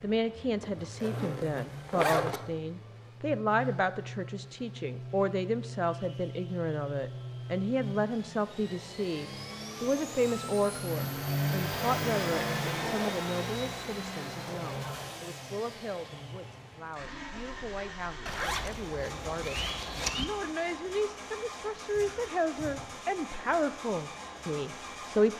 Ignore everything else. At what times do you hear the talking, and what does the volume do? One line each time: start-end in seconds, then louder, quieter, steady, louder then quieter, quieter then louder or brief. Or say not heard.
0.0-25.3 quieter then louder.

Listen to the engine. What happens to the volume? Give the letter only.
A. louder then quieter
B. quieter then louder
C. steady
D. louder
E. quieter
A.